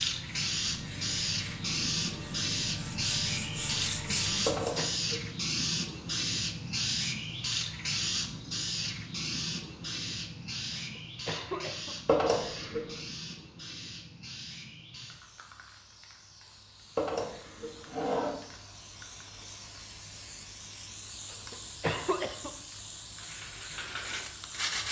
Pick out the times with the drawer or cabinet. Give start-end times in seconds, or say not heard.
4.5-5.3, 12.1-12.9, 16.9-18.4.